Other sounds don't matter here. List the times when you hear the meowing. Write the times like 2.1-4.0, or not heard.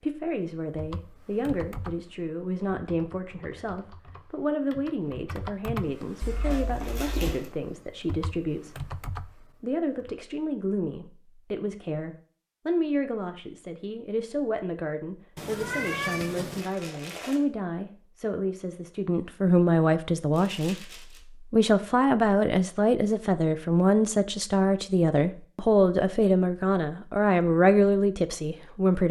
6.2-7.3, 15.3-16.6.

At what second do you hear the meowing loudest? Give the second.
16 s.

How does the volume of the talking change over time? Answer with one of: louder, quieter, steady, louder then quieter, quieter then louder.
louder.